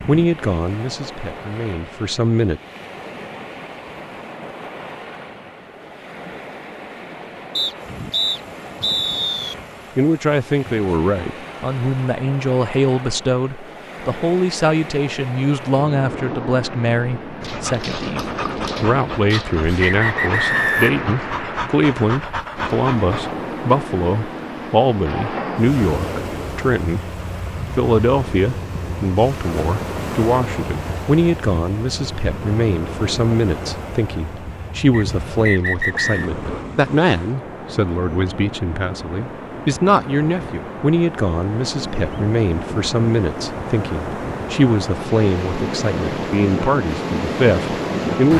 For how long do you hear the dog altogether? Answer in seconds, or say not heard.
6 s.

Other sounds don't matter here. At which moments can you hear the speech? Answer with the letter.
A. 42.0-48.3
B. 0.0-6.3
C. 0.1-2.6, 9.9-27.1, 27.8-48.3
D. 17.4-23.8
C.